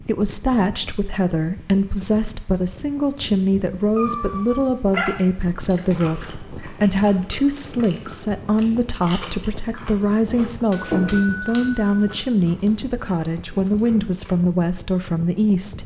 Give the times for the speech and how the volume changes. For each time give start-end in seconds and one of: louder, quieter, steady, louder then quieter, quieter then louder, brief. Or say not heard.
0.0-15.8 steady.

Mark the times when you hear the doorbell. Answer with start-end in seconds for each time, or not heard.
10.2-12.1.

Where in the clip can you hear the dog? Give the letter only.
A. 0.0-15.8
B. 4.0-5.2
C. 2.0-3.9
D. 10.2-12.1
B.